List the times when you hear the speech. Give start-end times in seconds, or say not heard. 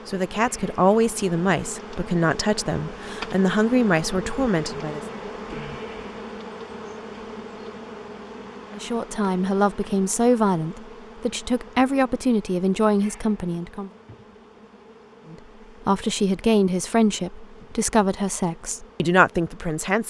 0.1-5.0, 8.7-13.9, 15.3-20.0.